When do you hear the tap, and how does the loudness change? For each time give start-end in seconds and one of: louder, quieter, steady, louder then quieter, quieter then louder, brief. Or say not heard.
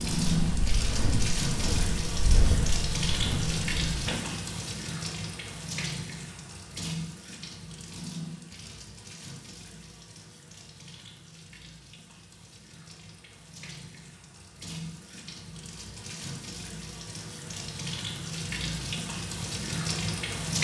0.0-20.5 quieter then louder.